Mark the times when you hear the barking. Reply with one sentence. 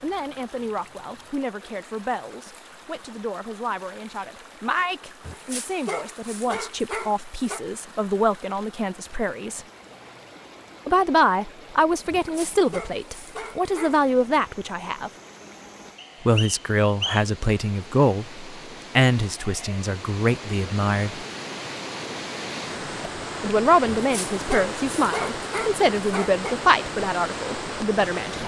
You can hear the barking from 5.2 to 7.7 s, from 12.1 to 14.1 s and from 23.9 to 26.6 s.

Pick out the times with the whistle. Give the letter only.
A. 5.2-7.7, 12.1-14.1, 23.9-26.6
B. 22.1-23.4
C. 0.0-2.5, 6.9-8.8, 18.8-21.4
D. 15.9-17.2
D.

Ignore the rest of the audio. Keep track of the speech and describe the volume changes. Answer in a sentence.
The volume of the speech goes up.